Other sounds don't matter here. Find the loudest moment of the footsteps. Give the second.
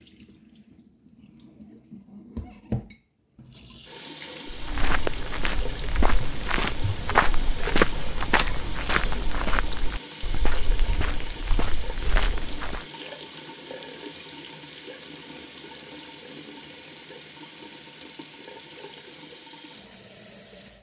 8 s.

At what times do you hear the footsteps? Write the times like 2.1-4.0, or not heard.
4.5-12.8.